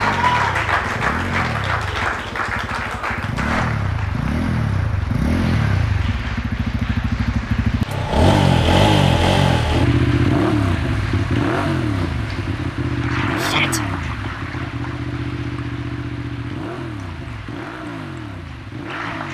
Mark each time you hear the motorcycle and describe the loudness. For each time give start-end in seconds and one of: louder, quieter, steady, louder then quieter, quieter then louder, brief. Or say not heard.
0.0-19.3 louder then quieter.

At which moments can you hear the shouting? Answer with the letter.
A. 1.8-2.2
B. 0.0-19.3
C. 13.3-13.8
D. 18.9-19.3
C.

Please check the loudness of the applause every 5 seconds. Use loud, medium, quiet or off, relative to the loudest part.
loud, medium, medium, quiet.